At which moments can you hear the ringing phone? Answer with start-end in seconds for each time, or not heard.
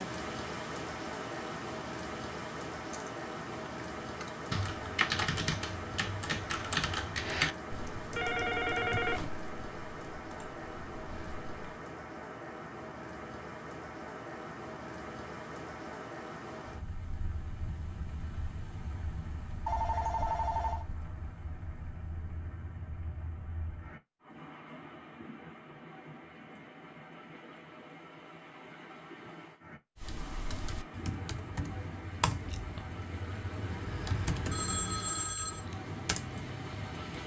8.2-9.2, 19.6-20.9, 34.5-35.6.